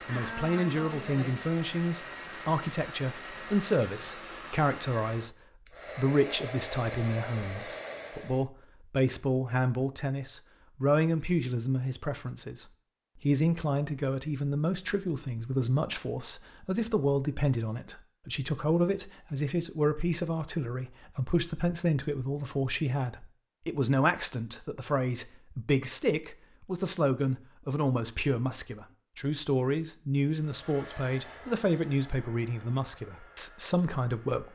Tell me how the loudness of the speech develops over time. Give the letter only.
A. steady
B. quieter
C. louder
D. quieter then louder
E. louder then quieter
A.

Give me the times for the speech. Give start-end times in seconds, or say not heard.
0.1-5.3, 6.0-34.5.